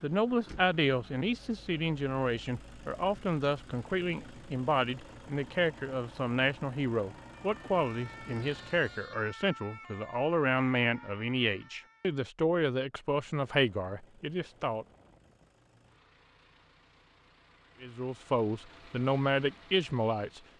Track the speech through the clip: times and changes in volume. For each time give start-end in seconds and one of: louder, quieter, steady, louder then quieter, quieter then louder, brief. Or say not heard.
0.0-14.8 steady
17.8-20.4 brief.